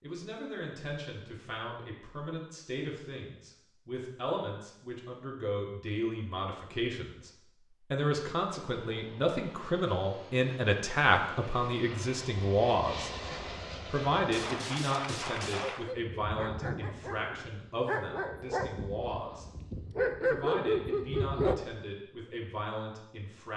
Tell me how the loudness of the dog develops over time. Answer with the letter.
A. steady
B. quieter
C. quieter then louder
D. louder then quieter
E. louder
E.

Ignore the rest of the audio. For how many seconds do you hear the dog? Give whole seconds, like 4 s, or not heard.
6 s.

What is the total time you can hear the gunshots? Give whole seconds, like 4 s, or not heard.
2 s.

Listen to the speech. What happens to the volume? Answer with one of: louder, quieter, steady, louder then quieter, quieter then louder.
louder then quieter.